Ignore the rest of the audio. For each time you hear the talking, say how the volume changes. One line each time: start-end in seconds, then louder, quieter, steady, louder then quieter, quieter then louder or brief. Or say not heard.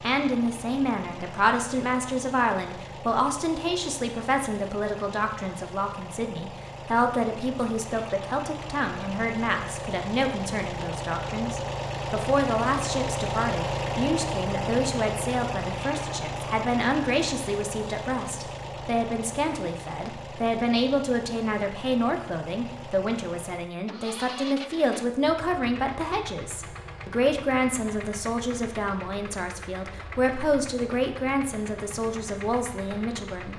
0.0-33.5 steady.